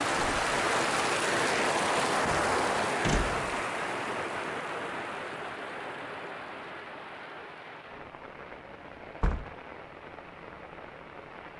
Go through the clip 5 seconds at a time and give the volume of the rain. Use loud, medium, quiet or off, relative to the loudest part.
loud, quiet, quiet.